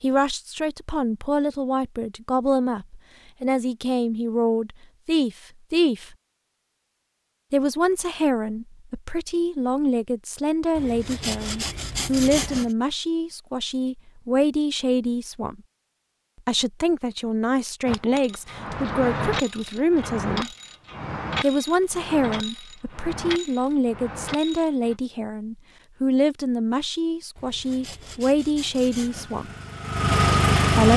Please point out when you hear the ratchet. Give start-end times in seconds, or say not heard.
17.9-24.9.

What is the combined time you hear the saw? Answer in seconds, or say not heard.
4 s.